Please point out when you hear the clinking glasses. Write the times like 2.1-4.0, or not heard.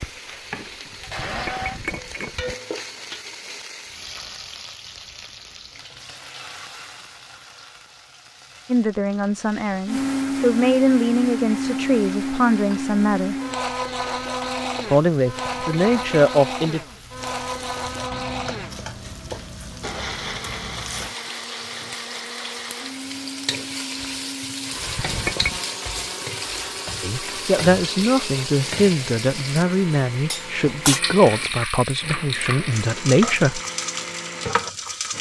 1.0-2.5, 15.4-16.2, 24.7-25.6.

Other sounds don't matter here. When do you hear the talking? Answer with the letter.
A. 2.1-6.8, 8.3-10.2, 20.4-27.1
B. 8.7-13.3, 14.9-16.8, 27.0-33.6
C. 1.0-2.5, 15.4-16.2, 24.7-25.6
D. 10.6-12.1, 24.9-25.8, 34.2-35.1
B.